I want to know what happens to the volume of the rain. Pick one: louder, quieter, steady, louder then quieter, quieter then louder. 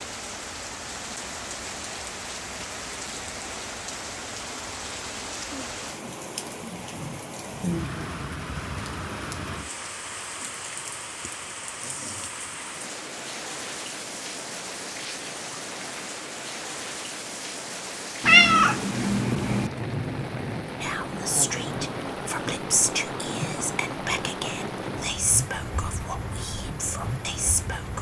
steady.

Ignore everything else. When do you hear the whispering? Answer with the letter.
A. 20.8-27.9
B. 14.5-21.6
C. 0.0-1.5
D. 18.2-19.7
A.